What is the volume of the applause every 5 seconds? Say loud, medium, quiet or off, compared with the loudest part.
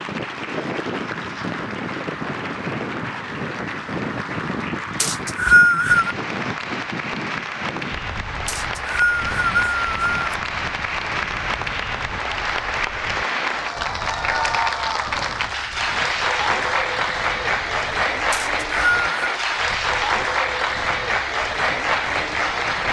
medium, medium, loud, loud, loud.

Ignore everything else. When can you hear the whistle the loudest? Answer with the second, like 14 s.
6 s.